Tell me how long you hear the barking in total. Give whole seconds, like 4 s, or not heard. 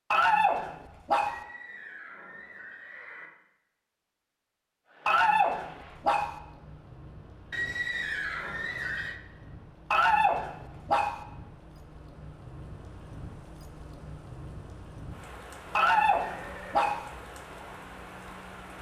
5 s.